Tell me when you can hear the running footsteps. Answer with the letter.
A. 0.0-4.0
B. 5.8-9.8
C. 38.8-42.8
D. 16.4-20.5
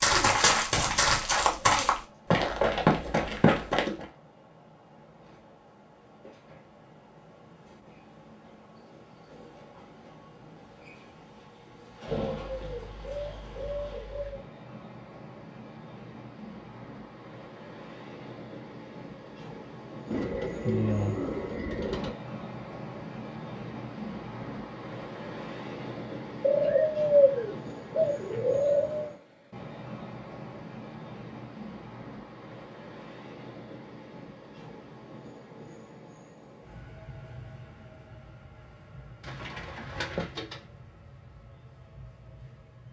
A.